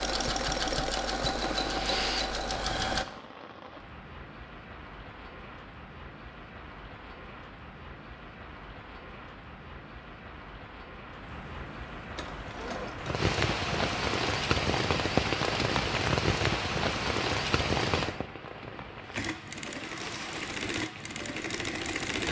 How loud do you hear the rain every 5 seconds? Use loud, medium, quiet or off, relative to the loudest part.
quiet, quiet, loud, loud, quiet.